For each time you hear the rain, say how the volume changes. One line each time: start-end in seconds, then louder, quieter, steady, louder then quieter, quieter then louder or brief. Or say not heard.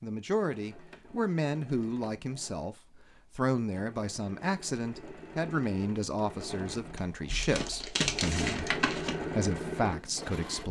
not heard.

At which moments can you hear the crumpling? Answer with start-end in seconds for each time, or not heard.
7.3-9.2.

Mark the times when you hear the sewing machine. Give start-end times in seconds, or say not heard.
0.1-10.6.